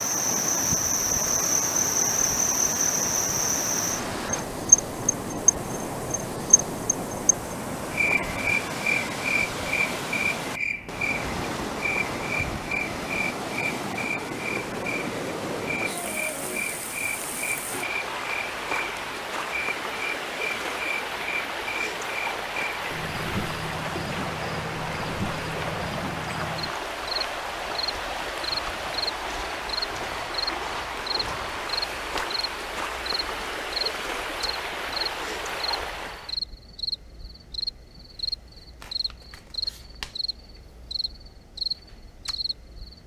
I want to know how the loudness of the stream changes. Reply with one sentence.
The loudness of the stream stays about the same.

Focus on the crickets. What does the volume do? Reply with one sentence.
The volume of the crickets goes down.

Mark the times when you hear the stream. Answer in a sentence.
You can hear the stream from 0.0 to 36.4 s.